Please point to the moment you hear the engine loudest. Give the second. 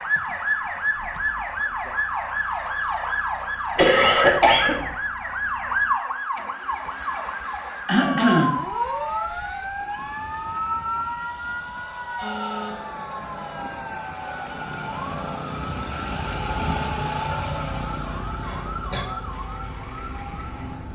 17 s.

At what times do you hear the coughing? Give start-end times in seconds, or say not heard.
3.8-5.0, 7.8-8.6, 18.4-19.1.